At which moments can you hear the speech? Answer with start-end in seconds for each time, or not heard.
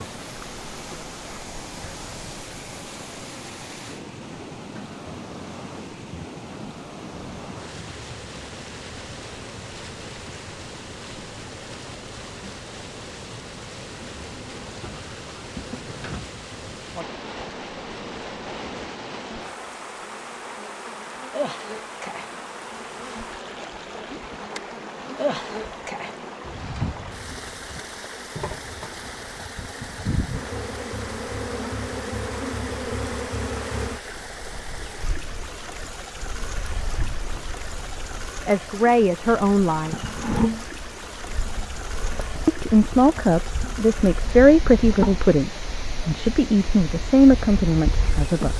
38.5-40.0, 42.5-48.5.